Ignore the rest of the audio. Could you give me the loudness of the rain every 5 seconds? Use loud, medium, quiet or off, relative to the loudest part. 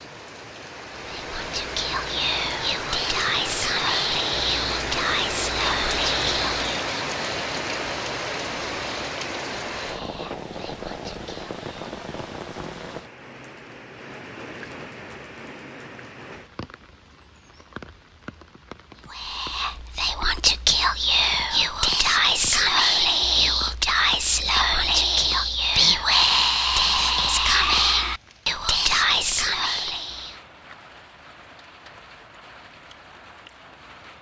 loud, loud, medium, quiet, quiet, quiet, quiet.